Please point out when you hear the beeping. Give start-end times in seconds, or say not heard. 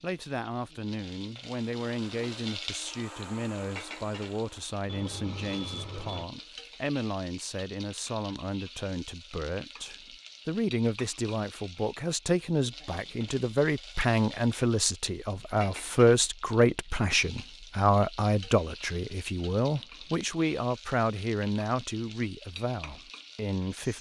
4.8-6.2.